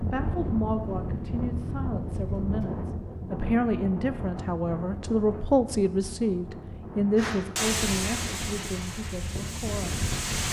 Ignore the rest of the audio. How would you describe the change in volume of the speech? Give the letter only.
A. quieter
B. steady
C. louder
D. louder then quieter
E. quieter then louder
D.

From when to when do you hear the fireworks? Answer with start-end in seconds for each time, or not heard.
7.2-10.4.